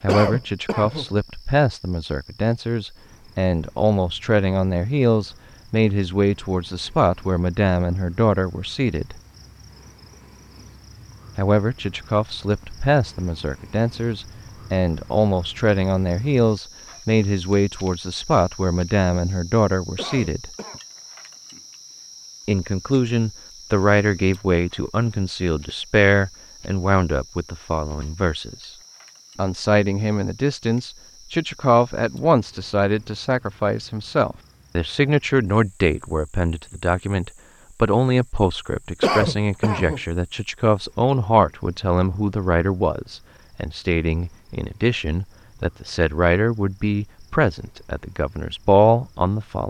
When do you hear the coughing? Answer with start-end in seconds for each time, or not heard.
0.1-1.1, 19.9-20.8, 39.0-40.0.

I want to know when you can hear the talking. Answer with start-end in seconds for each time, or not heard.
0.0-9.2, 11.3-20.5, 22.4-28.8, 29.4-49.6.